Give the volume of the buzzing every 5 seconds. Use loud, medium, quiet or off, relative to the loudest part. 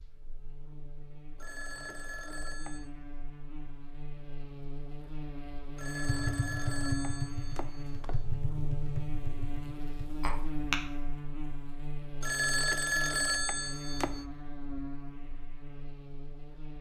medium, loud, loud, medium.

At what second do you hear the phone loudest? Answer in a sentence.
The loudest moment of the phone is at 13 seconds.